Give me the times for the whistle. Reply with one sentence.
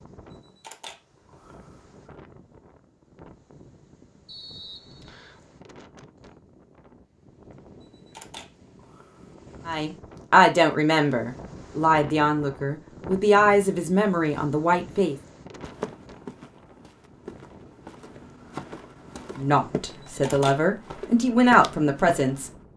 The whistle can be heard from 4.2 to 5.4 s.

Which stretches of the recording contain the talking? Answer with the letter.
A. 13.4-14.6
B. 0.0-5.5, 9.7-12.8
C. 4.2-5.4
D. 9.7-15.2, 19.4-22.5
D.